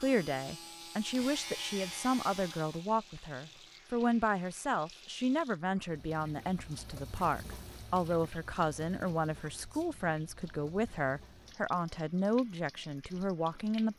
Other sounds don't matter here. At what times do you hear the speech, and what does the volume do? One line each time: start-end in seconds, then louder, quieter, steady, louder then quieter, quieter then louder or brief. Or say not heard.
0.0-13.9 steady.